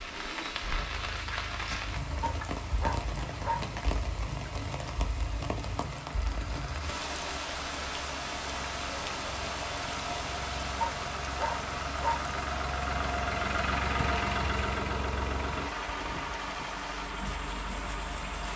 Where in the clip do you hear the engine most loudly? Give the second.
14 s.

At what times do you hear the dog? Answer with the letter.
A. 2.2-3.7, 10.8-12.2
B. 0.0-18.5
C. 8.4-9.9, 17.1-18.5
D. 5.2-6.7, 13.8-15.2
A.